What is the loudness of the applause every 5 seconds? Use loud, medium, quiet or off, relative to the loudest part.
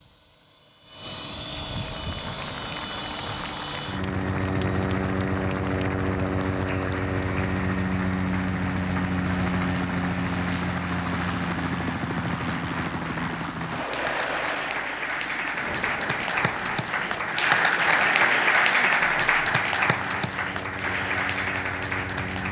quiet, quiet, medium, loud, medium.